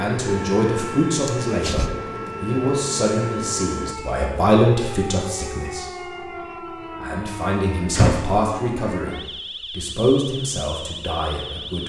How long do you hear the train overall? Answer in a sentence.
The train can be heard for 4 seconds in total.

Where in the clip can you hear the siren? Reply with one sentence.
The siren can be heard from 0.2 to 11.8 s.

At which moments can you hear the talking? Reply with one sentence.
You can hear the talking from 0.0 to 5.8 s and from 7.0 to 11.8 s.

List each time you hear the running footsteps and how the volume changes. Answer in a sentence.
The running footsteps can't be heard in this clip.